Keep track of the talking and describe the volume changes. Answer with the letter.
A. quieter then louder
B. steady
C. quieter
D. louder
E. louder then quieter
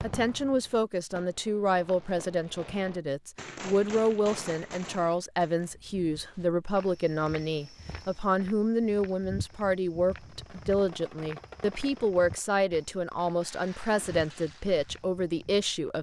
B.